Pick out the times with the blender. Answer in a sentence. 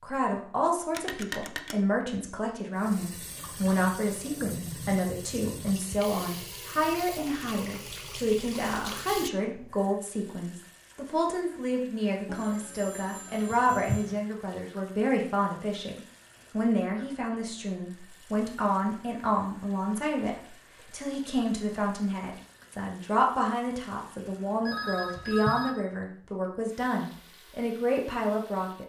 You can't hear the blender here.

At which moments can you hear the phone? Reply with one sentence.
You can hear the phone from 0.9 to 1.8 s, from 12.2 to 14.2 s and from 24.6 to 25.8 s.